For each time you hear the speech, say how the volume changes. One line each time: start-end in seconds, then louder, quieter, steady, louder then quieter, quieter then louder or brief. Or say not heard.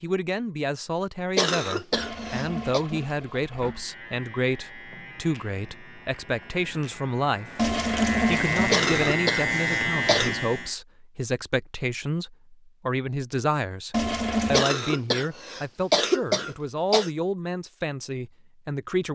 0.0-19.1 steady.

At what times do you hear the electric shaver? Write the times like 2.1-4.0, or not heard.
3.5-10.7.